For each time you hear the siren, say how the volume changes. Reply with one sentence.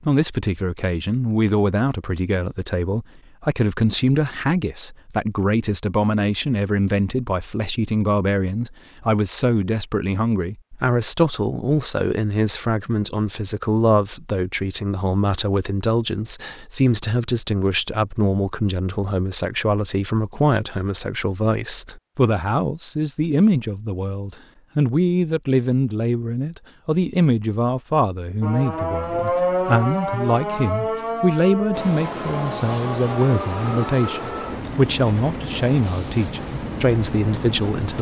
You can hear the siren from 28.4 to 34.0 s, getting quieter.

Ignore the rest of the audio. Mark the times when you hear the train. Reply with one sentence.
The train can be heard from 31.7 to 37.9 s.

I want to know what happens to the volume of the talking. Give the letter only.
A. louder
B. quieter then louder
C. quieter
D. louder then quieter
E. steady
E.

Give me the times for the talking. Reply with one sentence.
You can hear the talking from 0.1 to 37.9 s.